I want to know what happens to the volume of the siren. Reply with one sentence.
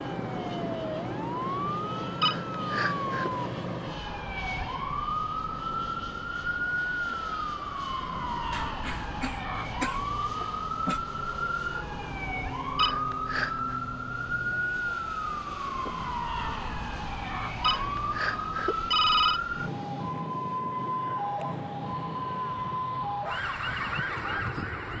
The volume of the siren stays about the same.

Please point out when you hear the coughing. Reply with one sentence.
The coughing can be heard from 8.5 to 11.0 s.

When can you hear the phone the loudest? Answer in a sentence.
The volume of the phone peaks at 19 seconds.